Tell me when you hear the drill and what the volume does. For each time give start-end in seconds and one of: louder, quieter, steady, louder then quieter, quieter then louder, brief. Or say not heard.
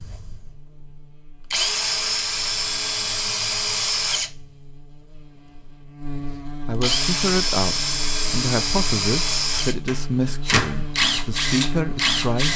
0.0-12.5 steady.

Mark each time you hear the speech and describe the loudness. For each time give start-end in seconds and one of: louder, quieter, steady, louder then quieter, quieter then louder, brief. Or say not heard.
6.7-12.5 steady.